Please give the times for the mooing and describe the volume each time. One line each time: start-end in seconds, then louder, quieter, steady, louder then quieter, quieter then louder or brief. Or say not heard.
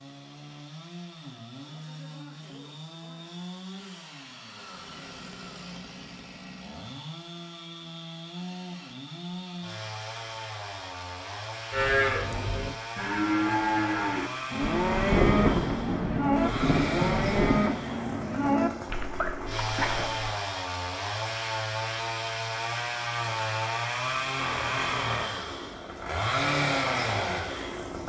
11.7-20.4 steady.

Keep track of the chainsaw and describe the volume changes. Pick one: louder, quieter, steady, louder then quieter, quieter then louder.
louder.